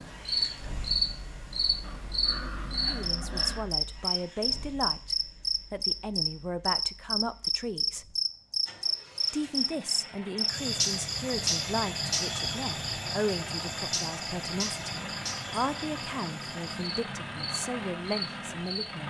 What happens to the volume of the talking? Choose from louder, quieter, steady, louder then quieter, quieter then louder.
steady.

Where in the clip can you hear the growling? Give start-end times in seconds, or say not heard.
1.8-3.7.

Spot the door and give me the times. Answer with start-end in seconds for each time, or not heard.
not heard.